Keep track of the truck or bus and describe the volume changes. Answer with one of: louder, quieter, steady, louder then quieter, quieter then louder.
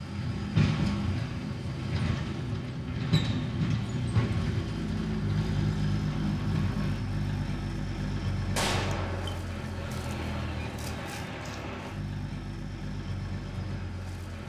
quieter.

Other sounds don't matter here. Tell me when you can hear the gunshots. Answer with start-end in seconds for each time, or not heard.
8.5-9.4.